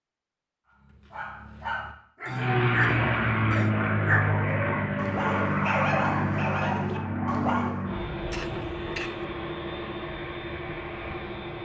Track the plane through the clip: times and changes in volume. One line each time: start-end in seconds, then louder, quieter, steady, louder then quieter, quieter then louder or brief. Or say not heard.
2.2-11.6 quieter.